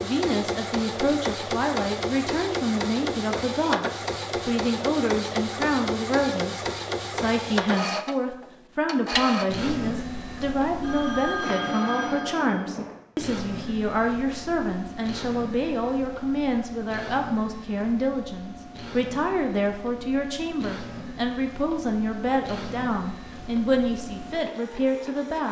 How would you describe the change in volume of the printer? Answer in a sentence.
The volume of the printer goes down.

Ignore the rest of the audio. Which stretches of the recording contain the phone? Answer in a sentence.
The phone can be heard from 10.8 to 13.0 s.